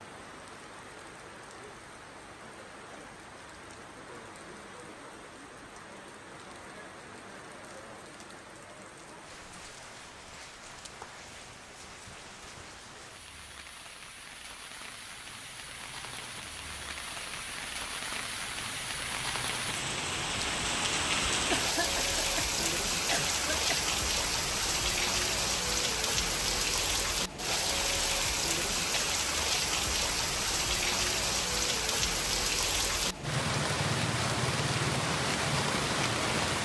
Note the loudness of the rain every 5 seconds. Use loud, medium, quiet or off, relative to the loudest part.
quiet, quiet, quiet, medium, loud, loud, loud, loud.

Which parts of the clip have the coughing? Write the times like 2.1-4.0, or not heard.
21.5-23.9.